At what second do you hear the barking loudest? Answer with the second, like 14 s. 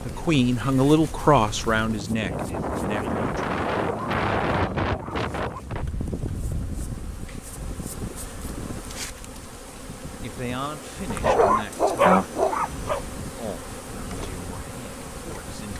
12 s.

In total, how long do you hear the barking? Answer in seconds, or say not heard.
4 s.